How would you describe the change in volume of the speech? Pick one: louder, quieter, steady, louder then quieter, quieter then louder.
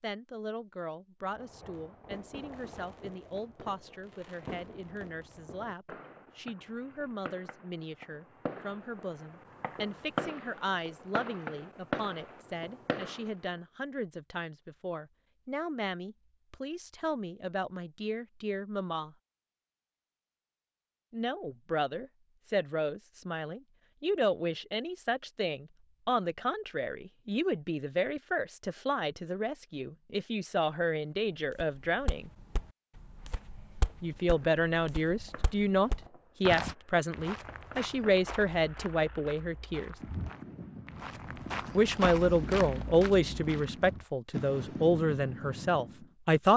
louder.